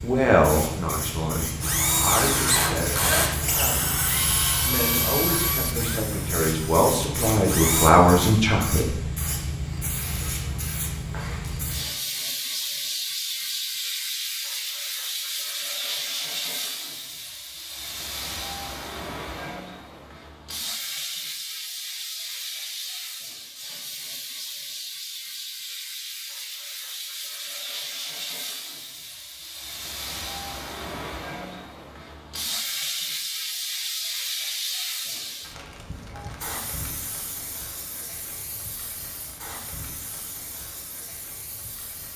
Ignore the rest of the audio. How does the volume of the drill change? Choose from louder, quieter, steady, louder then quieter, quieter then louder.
quieter.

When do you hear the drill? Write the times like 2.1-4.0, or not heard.
1.6-7.9.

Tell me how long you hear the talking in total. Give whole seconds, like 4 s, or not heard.
9 s.